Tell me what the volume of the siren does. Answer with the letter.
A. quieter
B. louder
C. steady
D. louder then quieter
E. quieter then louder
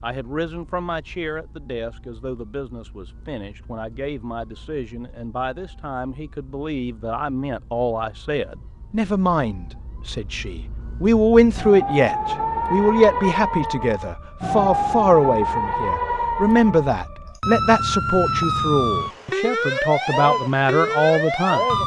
B.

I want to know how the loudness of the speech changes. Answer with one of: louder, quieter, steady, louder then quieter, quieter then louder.
louder.